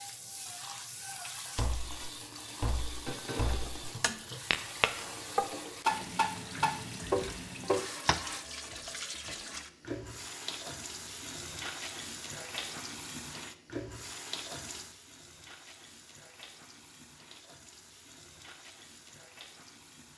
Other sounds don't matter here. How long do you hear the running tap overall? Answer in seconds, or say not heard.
20 s.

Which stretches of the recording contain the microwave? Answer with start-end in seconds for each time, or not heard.
not heard.